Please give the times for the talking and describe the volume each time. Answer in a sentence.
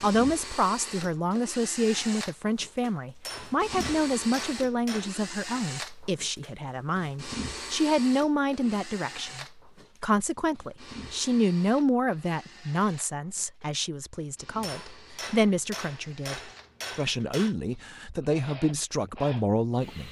You can hear the talking from 0.0 to 20.0 s, at a steady volume.